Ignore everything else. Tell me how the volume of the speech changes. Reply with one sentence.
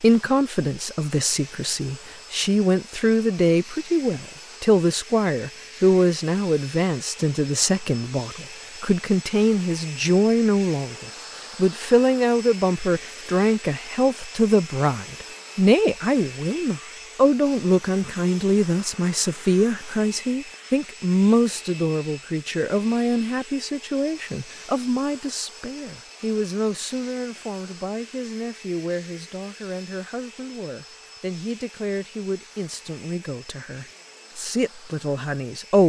The loudness of the speech goes down.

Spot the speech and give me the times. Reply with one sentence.
You can hear the speech from 0.0 to 35.8 s.